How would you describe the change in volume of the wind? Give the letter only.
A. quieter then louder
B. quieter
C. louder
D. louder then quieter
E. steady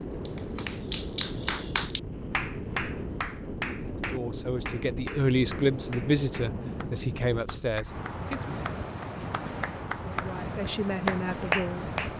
E.